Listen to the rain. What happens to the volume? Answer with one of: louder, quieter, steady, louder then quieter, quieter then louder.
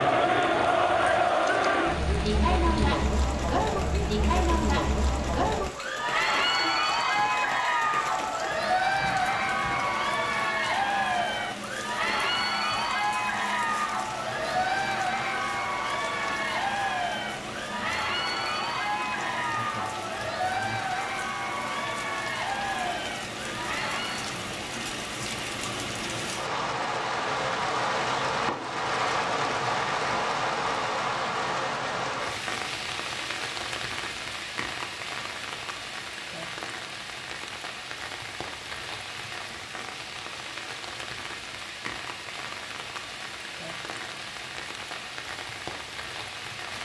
louder then quieter.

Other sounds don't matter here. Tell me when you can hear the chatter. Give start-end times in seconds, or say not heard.
0.0-24.3.